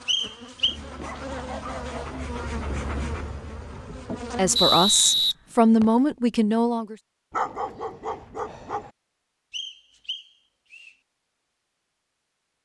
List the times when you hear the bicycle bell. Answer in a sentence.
You can't hear the bicycle bell here.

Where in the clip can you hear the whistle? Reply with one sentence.
You can hear the whistle from 0.1 to 0.8 s, from 4.5 to 5.8 s and from 9.5 to 10.9 s.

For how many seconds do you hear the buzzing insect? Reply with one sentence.
You can hear the buzzing insect for 5 seconds altogether.